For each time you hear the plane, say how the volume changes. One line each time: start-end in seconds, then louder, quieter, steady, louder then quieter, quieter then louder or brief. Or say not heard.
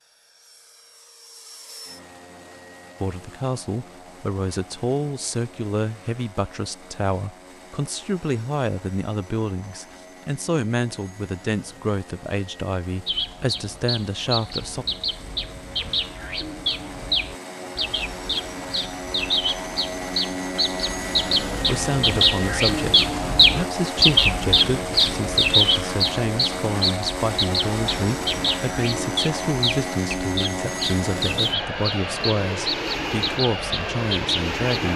0.0-34.9 louder.